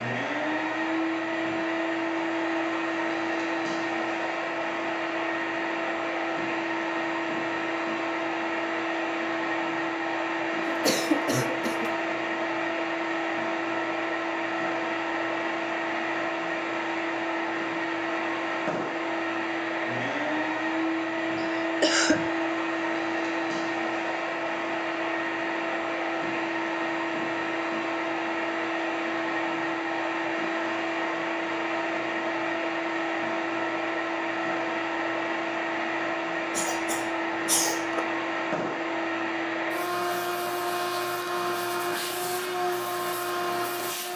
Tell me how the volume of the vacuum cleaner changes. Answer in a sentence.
The volume of the vacuum cleaner stays about the same.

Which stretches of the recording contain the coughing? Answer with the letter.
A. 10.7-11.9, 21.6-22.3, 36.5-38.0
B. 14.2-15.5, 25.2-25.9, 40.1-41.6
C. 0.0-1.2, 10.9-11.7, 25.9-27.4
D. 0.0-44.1
A.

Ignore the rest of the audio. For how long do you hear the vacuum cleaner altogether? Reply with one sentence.
The vacuum cleaner can be heard for 44 seconds in total.